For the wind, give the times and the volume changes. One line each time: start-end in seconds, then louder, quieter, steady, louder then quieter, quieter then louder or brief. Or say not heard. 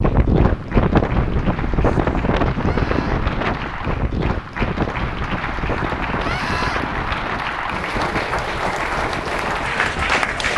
0.0-10.5 quieter.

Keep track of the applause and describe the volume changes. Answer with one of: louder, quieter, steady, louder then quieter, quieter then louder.
louder.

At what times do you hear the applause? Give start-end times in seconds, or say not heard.
0.0-10.5.